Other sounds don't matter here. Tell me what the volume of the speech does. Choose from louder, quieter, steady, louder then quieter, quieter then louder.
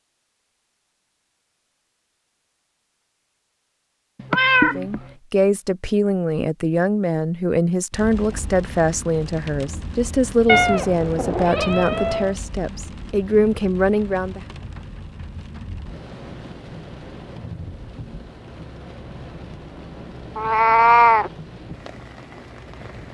steady.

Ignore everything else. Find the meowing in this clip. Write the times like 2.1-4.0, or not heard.
4.2-5.0, 10.4-12.3, 20.4-21.3.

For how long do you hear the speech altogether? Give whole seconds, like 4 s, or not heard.
10 s.